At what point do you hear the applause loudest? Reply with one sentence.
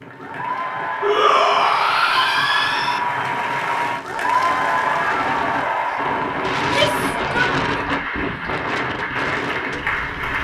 The loudest moment of the applause is at 5 seconds.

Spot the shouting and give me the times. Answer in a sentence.
The shouting can be heard from 1.0 to 3.0 s and from 6.6 to 7.8 s.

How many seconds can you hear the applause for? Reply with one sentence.
You can hear the applause for 10 seconds altogether.